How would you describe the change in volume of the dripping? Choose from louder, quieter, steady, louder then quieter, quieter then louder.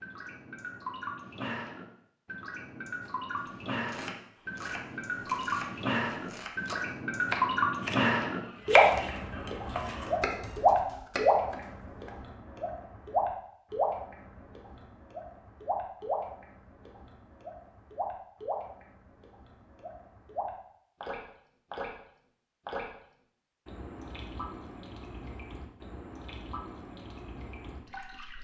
louder then quieter.